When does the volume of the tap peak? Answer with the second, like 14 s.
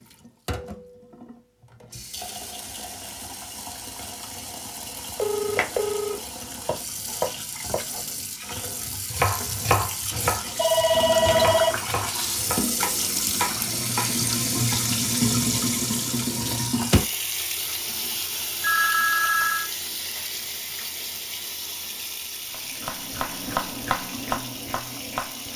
15 s.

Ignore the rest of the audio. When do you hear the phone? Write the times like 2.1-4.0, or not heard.
5.2-6.2, 10.1-11.8, 18.6-19.7.